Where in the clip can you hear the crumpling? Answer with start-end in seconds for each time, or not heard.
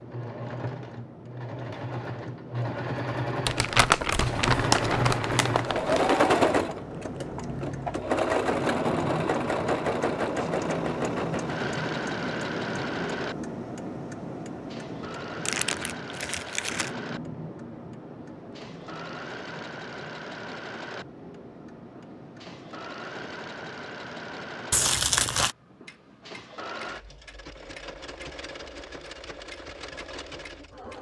3.5-6.2, 15.4-16.9, 24.7-25.6.